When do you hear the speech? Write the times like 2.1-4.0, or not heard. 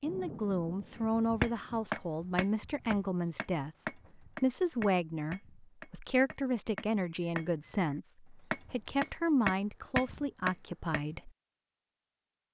0.0-3.7, 4.4-11.3.